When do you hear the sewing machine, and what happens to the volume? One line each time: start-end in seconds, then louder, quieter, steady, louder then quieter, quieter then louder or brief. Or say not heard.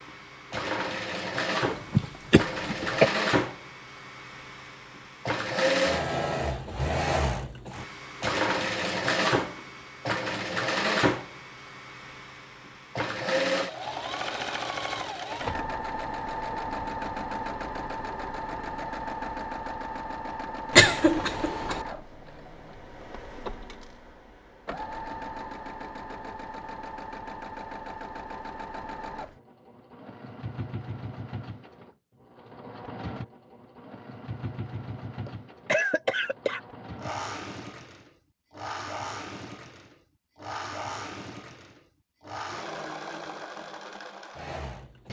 0.0-45.0 quieter.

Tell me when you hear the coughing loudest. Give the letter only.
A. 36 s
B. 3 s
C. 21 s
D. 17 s
C.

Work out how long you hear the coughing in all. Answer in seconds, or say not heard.
4 s.